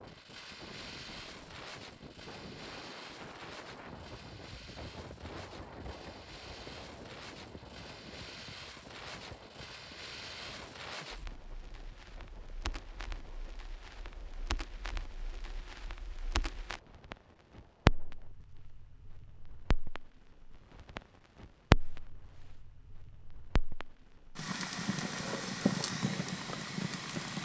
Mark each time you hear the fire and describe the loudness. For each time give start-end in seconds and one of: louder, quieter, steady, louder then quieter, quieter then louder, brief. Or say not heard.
0.1-27.4 louder.